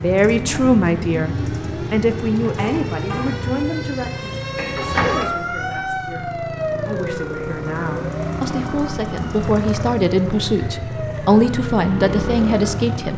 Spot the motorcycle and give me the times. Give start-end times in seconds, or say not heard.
0.0-13.1.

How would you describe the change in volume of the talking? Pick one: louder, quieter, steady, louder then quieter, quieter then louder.
quieter then louder.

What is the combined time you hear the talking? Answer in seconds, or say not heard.
13 s.